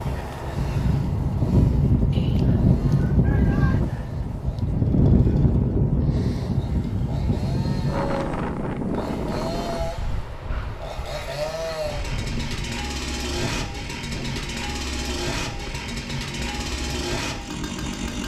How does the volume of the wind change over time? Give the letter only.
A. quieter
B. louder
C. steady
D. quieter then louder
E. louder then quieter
A.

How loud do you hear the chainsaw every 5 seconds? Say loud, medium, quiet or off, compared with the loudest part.
quiet, medium, loud, loud.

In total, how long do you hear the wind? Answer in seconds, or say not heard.
18 s.